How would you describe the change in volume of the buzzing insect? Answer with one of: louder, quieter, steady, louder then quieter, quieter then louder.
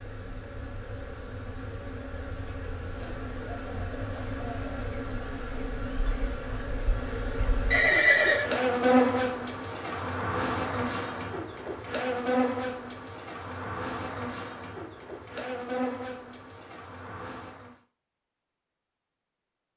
louder then quieter.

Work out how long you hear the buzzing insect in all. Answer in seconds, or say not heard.
18 s.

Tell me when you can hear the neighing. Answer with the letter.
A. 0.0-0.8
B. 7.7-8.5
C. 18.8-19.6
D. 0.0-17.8
B.